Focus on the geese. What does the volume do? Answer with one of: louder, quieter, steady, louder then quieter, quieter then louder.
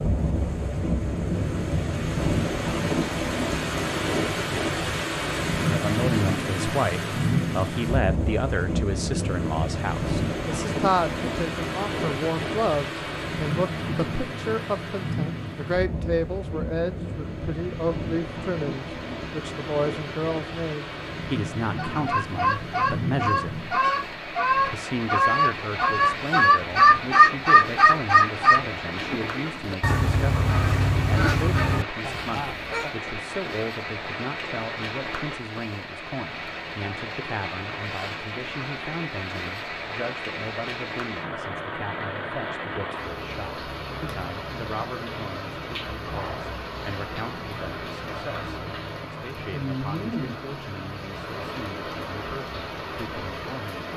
louder then quieter.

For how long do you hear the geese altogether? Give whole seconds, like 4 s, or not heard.
11 s.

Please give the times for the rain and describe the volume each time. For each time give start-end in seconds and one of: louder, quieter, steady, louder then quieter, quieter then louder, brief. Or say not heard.
0.0-53.9 quieter.